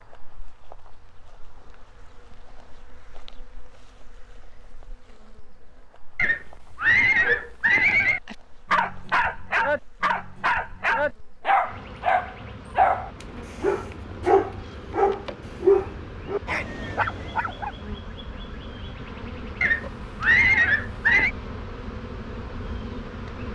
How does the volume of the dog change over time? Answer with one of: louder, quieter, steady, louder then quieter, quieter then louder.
steady.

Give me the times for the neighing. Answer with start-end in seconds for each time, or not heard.
6.2-8.2, 19.6-21.3.